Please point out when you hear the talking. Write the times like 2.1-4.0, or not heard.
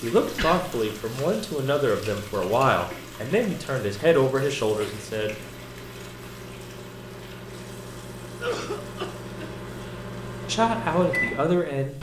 0.0-5.3, 10.4-11.9.